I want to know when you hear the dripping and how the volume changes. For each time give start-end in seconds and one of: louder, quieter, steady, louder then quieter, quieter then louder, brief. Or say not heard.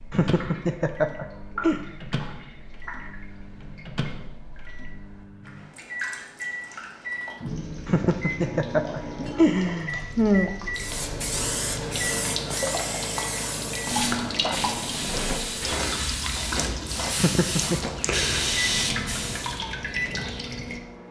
0.0-21.0 louder.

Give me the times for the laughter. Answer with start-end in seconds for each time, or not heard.
0.1-1.9, 7.8-10.5, 17.1-17.8.